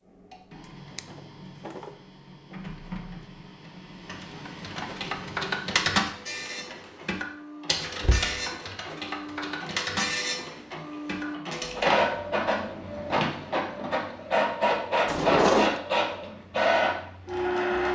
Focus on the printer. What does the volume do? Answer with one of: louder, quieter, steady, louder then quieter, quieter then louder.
louder.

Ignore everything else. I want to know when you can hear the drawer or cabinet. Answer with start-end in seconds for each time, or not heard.
0.9-1.9, 8.0-8.4, 15.1-15.8.